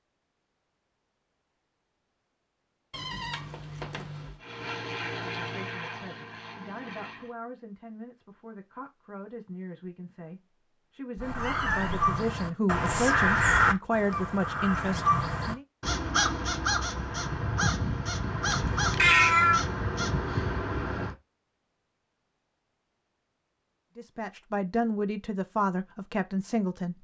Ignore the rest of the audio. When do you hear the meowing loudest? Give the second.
19 s.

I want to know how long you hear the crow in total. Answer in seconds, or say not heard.
10 s.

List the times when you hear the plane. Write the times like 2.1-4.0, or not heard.
4.4-7.3.